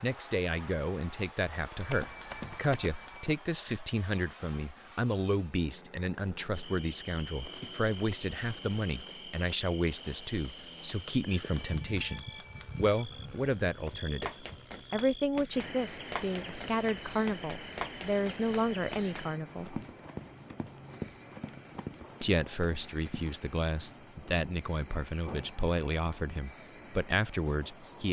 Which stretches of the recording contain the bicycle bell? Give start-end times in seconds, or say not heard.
1.8-3.3, 11.5-13.1, 25.1-26.5.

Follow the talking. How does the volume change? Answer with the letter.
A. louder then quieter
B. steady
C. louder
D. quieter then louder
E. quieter
B.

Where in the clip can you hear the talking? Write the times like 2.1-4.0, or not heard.
0.0-19.8, 22.2-28.0.